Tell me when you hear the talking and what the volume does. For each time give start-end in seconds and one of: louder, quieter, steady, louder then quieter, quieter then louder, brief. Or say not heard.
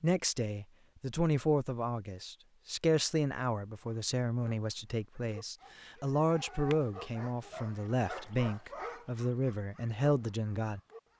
0.0-10.8 steady.